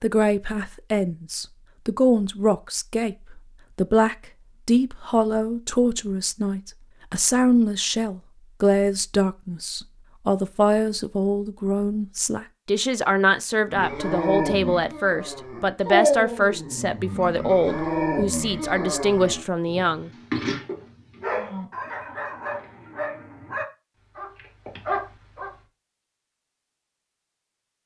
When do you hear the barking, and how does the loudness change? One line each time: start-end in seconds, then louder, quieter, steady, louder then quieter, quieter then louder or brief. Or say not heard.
13.7-25.5 quieter.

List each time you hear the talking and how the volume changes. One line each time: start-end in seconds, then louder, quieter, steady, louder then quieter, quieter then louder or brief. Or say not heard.
0.0-20.1 steady.